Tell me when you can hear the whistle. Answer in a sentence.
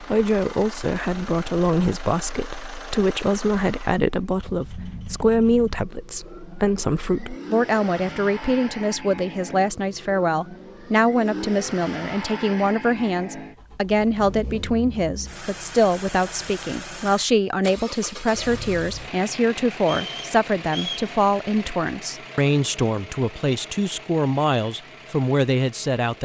The whistle can be heard from 19.8 to 21.1 s.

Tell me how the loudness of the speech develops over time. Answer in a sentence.
The volume of the speech stays about the same.